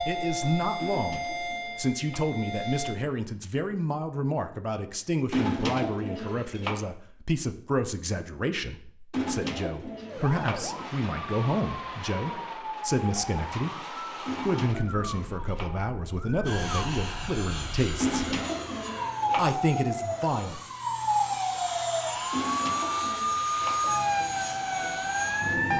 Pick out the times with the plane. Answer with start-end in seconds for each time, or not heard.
16.4-25.7.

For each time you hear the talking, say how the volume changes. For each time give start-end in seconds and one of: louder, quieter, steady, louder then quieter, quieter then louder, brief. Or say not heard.
0.1-18.2 steady
19.4-20.6 brief.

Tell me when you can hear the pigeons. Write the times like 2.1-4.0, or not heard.
0.8-2.2, 5.3-6.8, 9.1-10.6, 14.2-15.7, 18.0-19.4, 22.3-23.8.